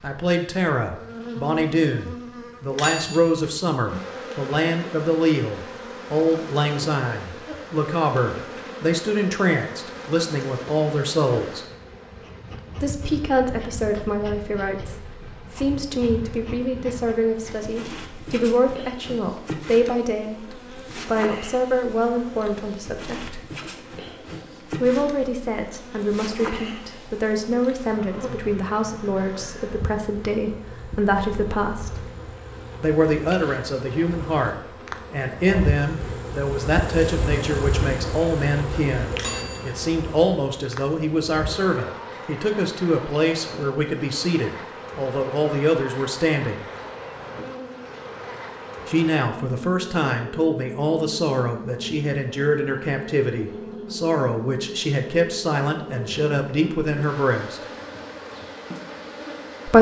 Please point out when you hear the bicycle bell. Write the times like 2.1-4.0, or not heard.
2.7-3.5, 39.1-39.7.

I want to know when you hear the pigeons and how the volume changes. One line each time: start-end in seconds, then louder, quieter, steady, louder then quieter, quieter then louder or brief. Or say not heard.
not heard.